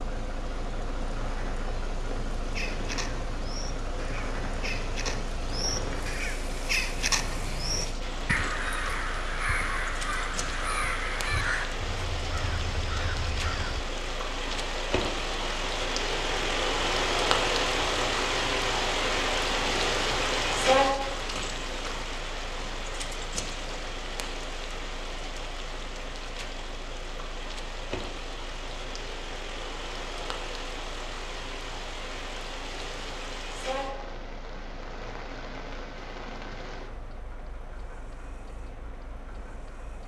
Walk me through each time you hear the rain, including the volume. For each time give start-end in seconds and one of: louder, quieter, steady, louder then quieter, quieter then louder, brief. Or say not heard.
0.0-40.0 louder then quieter.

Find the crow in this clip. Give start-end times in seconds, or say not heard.
2.4-13.8.